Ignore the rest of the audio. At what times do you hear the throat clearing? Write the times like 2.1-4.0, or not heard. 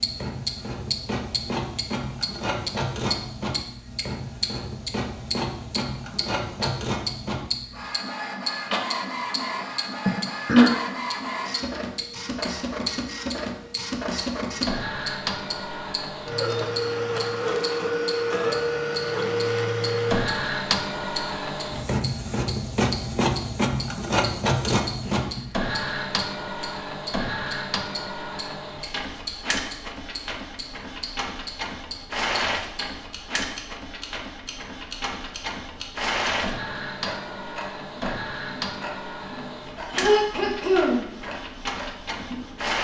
10.1-10.7, 25.0-25.6, 39.9-41.0.